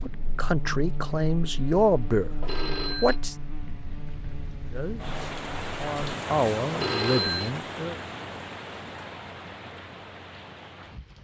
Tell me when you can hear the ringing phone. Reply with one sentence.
You can hear the ringing phone from 2.4 to 3.2 s and from 6.7 to 7.5 s.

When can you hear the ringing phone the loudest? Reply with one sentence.
The volume of the ringing phone peaks at 7 seconds.